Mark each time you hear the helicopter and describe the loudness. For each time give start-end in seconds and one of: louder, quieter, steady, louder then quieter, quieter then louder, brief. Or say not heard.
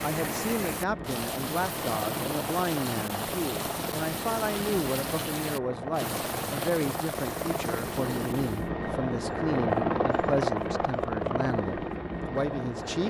0.0-13.0 louder.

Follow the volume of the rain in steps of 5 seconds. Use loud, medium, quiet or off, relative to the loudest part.
loud, loud, off.